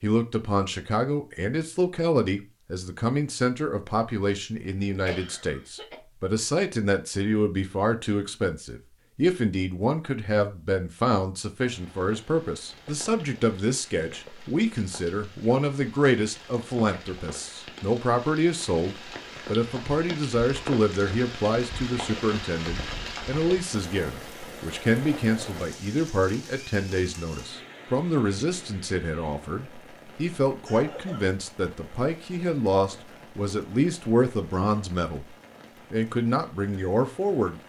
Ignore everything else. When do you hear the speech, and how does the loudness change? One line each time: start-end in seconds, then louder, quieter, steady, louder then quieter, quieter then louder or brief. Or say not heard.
0.0-35.2 steady
35.9-37.6 brief.